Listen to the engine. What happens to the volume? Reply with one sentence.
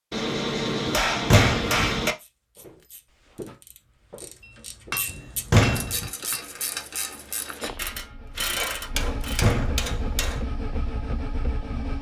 The loudness of the engine goes up.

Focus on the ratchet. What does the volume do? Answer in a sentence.
The loudness of the ratchet goes up.